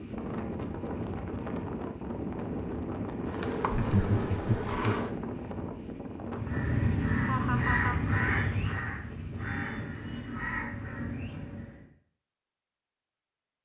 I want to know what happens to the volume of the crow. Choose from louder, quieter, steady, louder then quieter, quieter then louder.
quieter.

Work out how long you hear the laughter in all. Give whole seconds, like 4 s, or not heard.
2 s.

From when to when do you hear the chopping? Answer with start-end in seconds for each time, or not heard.
not heard.